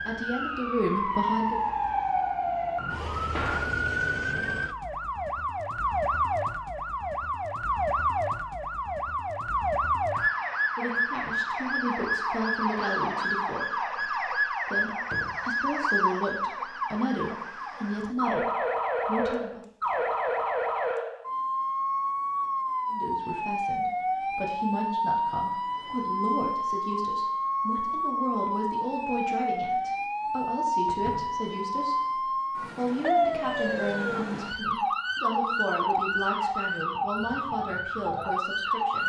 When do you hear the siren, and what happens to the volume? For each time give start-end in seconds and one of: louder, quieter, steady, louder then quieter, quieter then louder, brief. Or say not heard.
0.0-39.0 steady.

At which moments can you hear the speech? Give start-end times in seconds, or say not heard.
0.0-1.7, 10.8-19.6, 22.9-39.0.